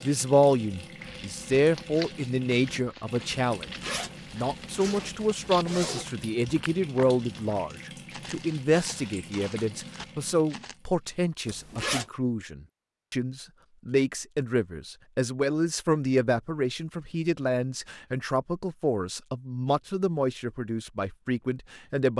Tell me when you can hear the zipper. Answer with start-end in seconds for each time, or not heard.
3.5-6.2, 11.4-12.1.